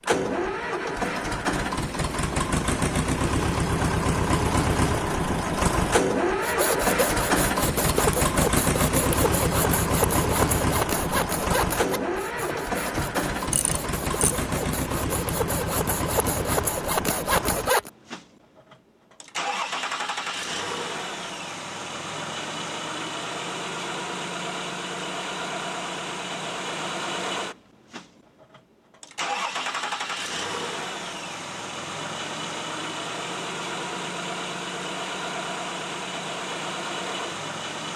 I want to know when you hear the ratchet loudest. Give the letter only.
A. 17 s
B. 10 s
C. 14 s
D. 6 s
C.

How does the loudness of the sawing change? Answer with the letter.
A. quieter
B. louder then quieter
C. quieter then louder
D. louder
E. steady
C.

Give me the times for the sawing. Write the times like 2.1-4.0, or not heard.
6.4-17.9.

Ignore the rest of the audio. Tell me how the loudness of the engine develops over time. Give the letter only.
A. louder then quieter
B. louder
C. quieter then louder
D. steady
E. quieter
E.